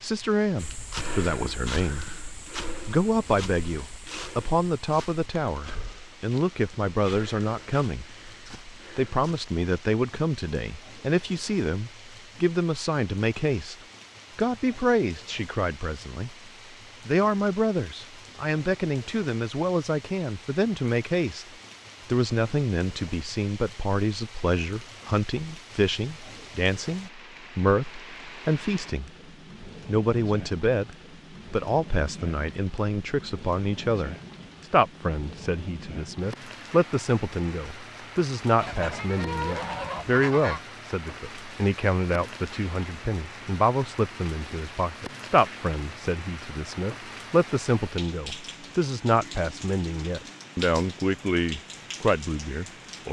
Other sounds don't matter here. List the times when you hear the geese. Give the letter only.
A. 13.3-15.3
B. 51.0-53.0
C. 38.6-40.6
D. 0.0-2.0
C.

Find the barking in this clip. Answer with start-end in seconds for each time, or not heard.
not heard.